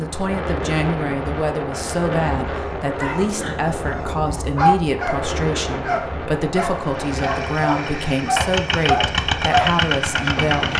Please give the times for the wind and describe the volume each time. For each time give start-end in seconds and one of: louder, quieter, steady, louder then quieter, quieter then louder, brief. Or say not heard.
0.0-10.7 quieter.